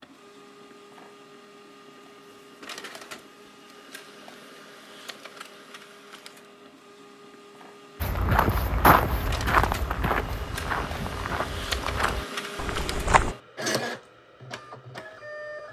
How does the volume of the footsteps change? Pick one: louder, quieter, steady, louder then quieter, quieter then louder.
quieter.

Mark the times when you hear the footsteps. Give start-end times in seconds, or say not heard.
8.0-13.3.